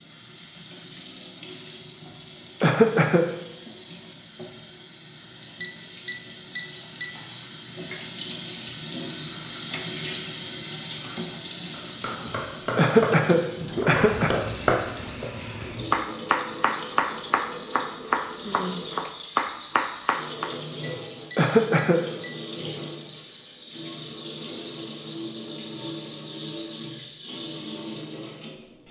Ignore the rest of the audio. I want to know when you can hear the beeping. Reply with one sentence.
You can hear the beeping from 5.6 to 7.1 s and from 20.8 to 22.3 s.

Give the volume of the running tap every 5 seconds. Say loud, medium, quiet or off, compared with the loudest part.
medium, loud, loud, medium, medium, medium.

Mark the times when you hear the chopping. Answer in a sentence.
You can hear the chopping from 11.7 to 20.5 s.